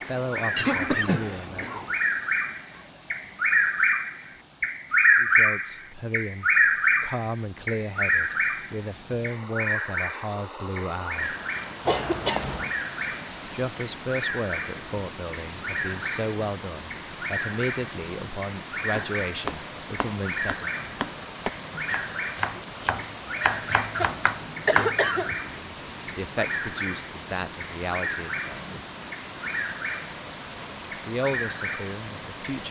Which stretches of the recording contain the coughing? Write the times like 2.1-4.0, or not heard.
0.6-1.9, 11.8-12.8, 23.9-25.4.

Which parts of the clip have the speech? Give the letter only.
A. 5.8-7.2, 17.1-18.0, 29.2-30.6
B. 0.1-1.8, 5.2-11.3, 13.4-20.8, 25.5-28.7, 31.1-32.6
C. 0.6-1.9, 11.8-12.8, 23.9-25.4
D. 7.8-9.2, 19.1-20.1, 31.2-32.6
B.